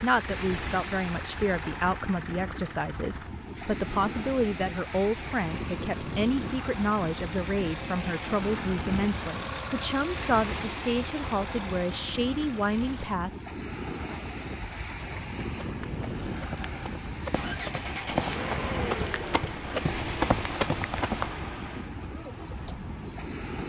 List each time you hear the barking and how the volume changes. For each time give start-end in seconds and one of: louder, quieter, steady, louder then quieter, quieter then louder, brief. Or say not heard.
not heard.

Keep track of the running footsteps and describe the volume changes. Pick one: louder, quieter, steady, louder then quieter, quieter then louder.
louder.